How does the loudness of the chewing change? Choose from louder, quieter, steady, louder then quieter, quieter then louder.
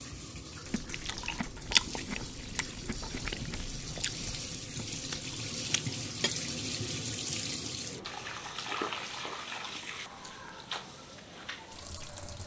quieter then louder.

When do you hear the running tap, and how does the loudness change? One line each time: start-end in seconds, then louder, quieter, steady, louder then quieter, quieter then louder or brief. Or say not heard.
0.0-12.4 louder then quieter.